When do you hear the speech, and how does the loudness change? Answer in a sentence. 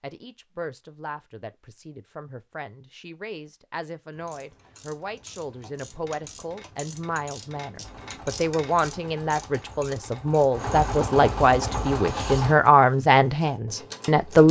You can hear the speech from 0.0 to 14.4 s, getting louder.